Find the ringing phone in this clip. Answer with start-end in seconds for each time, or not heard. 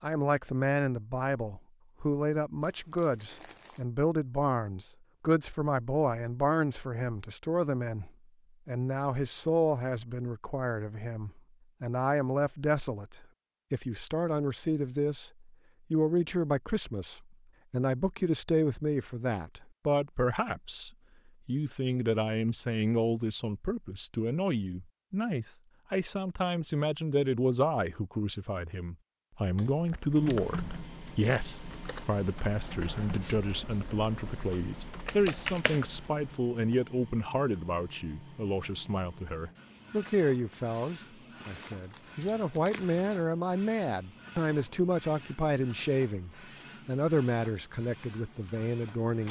not heard.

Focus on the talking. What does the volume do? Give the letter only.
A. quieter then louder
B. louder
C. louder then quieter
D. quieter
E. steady
E.